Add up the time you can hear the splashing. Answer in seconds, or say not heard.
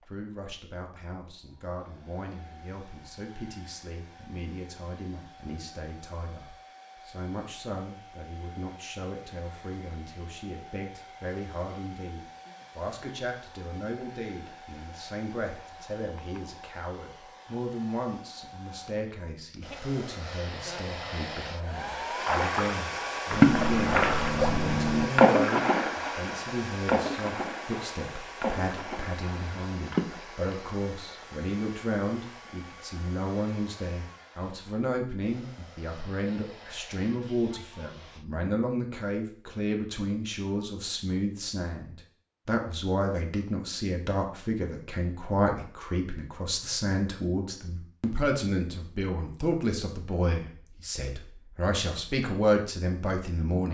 9 s.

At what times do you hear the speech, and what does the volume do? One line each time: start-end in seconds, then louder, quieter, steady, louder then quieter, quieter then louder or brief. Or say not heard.
0.1-53.7 louder.